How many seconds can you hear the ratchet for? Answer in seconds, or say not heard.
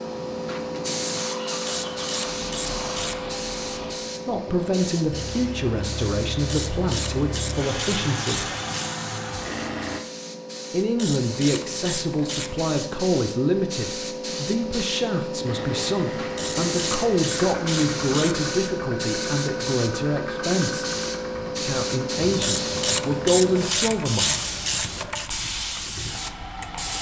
11 s.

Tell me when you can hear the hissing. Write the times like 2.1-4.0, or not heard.
0.0-26.9.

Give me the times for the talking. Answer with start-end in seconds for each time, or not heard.
4.2-8.5, 10.7-20.9, 21.5-24.6.